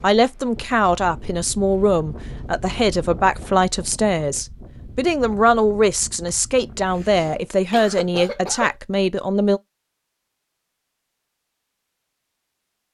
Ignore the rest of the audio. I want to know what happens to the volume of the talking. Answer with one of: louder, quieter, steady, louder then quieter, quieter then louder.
steady.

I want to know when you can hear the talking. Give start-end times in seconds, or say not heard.
0.0-9.6.